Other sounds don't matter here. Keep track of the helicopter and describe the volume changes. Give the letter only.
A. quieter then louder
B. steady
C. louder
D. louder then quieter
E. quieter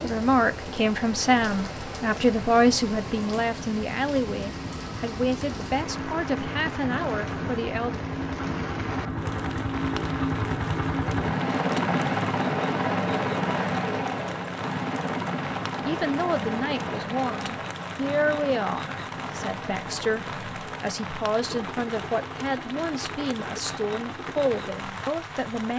D.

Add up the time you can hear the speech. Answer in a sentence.
You can hear the speech for 18 seconds altogether.